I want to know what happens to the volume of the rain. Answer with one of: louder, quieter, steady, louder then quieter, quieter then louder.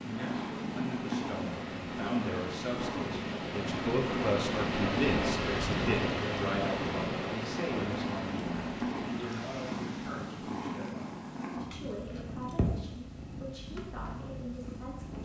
louder then quieter.